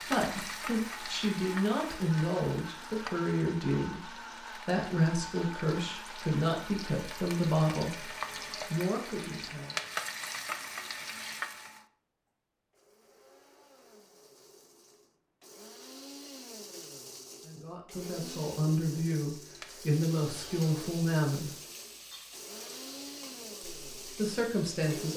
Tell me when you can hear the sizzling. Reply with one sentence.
The sizzling can be heard from 0.0 to 11.8 s and from 19.3 to 25.1 s.